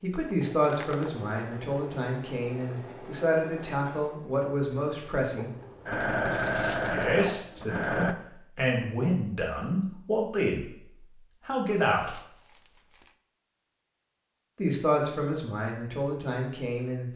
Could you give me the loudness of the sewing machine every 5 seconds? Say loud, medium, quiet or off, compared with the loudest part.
quiet, loud, off, off.